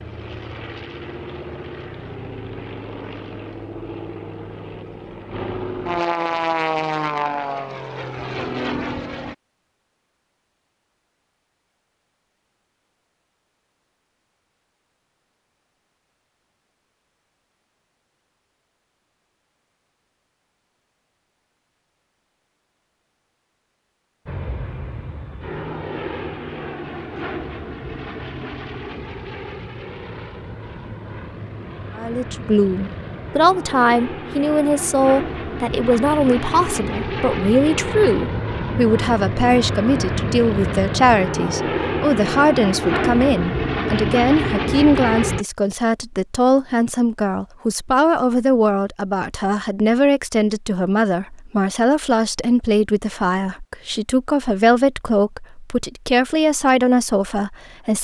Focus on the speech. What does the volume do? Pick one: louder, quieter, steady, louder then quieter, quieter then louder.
steady.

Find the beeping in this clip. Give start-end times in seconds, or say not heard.
not heard.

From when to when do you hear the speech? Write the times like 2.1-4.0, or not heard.
31.9-57.9.